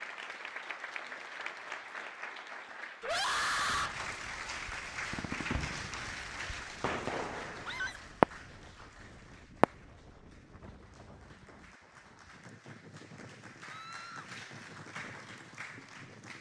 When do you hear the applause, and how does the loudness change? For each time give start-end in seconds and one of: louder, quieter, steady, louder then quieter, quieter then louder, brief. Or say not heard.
0.0-16.3 quieter then louder.